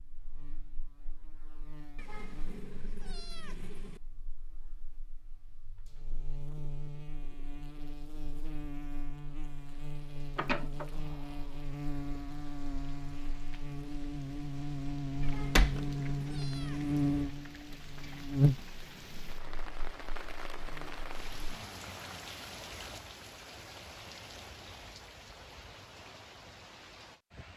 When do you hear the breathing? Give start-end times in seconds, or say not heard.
not heard.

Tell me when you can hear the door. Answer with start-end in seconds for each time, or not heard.
10.3-10.8, 15.2-15.8.